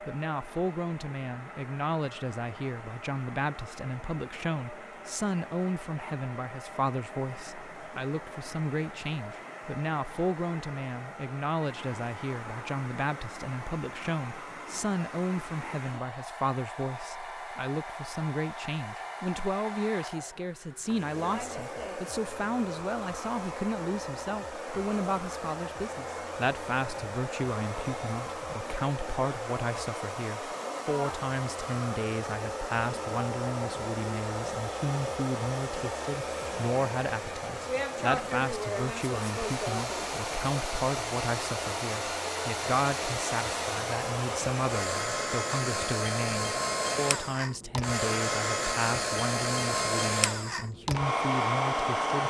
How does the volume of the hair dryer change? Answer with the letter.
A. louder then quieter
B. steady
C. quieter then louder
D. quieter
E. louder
E.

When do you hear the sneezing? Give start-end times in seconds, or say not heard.
not heard.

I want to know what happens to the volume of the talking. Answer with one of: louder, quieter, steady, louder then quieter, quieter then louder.
steady.